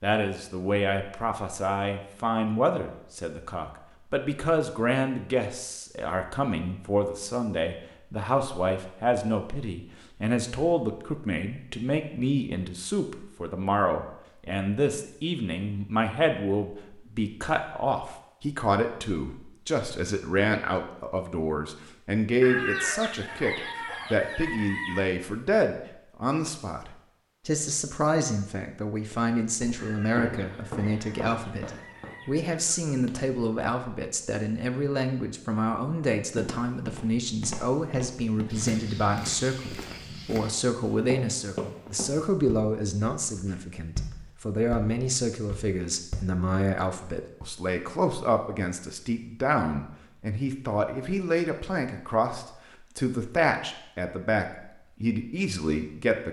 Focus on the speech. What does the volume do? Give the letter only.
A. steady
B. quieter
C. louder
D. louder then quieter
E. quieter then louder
A.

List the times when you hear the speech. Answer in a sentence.
You can hear the speech from 0.0 to 56.2 s.